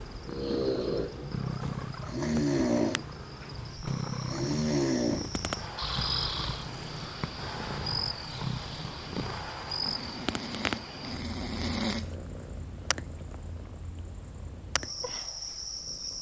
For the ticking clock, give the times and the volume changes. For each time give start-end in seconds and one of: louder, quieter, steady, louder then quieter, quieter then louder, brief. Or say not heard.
not heard.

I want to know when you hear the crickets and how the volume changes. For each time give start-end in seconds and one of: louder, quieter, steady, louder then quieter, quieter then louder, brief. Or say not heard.
0.0-16.1 louder.